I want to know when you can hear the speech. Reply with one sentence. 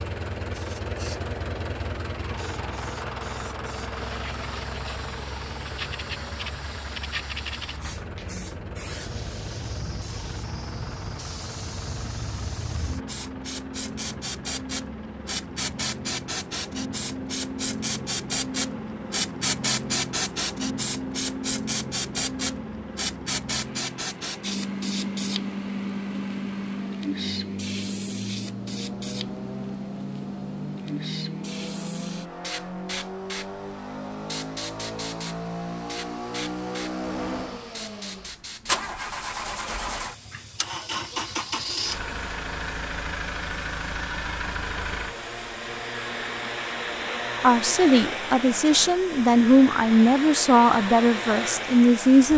You can hear the speech from 47.4 to 52.3 s.